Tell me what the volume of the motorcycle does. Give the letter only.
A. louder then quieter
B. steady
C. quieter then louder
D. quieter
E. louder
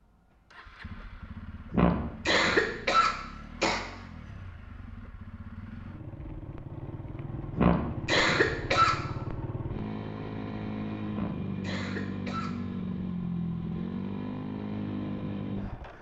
E.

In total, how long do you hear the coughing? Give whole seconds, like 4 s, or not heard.
5 s.